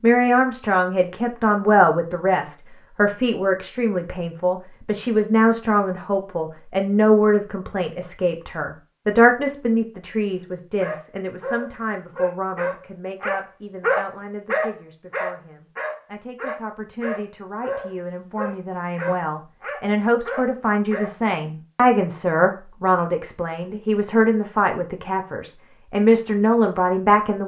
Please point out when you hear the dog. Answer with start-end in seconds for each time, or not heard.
10.8-21.1.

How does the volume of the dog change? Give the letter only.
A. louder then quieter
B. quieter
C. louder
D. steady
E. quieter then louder
A.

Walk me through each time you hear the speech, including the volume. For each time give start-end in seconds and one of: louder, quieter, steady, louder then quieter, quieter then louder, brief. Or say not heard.
0.0-27.4 quieter then louder.